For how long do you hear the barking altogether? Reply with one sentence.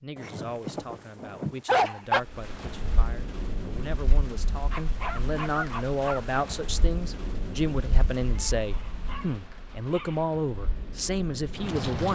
The barking can be heard for 6 seconds in total.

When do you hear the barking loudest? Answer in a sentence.
The loudest moment of the barking is at 2 seconds.